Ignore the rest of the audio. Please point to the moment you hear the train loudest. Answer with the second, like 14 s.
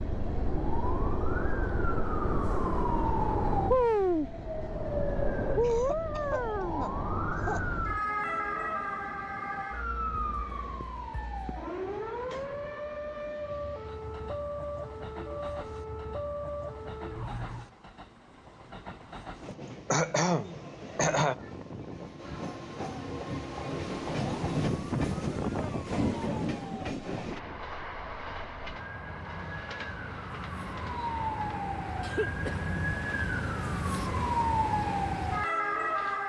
25 s.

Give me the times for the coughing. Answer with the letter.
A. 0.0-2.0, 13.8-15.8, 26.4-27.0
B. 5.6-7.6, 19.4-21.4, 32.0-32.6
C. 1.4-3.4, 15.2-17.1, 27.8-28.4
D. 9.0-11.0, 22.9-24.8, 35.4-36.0
B.